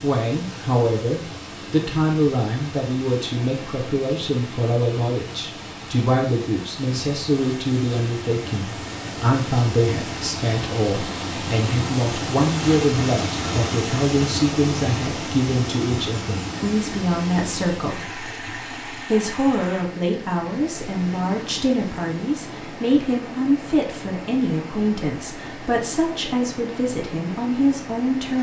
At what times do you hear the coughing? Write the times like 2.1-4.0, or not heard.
not heard.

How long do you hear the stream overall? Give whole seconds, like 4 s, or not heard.
28 s.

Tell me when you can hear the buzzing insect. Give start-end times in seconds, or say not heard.
not heard.